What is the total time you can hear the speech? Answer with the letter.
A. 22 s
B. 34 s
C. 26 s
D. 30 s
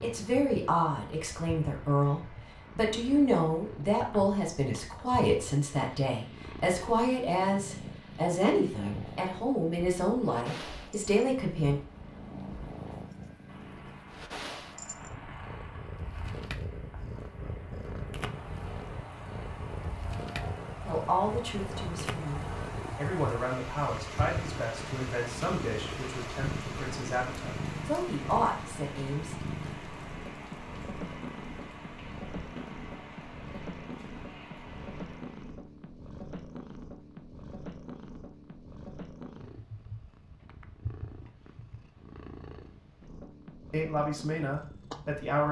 A.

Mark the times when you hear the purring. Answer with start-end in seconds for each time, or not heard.
0.0-45.4.